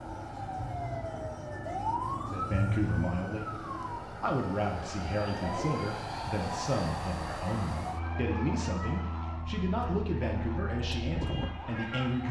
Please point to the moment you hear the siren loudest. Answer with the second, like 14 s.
2 s.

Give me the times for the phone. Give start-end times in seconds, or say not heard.
not heard.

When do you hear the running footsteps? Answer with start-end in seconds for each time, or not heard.
not heard.